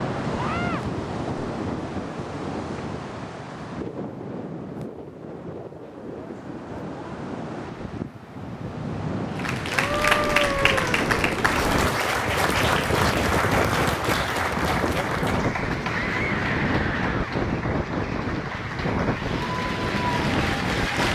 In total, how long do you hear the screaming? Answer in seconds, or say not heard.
3 s.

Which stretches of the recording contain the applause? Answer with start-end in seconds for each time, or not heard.
9.3-21.0.